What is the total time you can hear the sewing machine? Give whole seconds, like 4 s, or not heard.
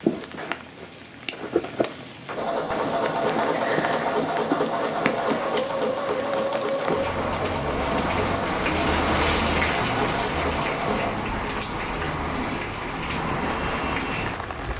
9 s.